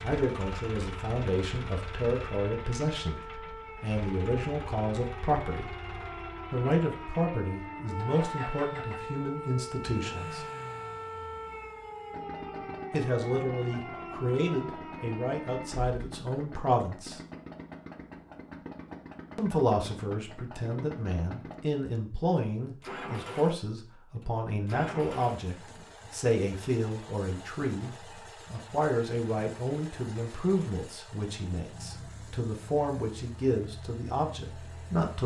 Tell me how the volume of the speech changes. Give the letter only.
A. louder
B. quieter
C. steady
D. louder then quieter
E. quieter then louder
C.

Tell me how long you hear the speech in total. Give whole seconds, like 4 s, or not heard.
30 s.